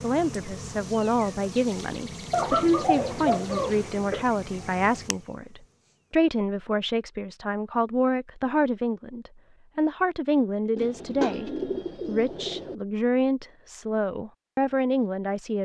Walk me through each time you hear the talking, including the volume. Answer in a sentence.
The talking can be heard from 0.0 to 15.6 s, at a steady volume.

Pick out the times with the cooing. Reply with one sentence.
The cooing can be heard from 2.3 to 4.2 s and from 10.8 to 12.8 s.